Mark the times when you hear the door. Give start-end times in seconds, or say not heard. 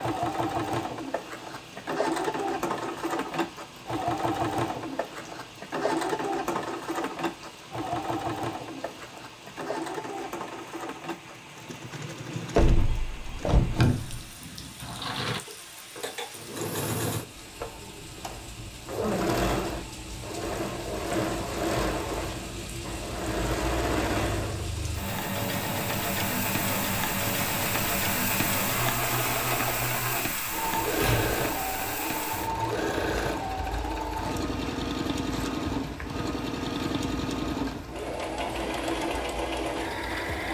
12.6-14.2, 30.4-31.5.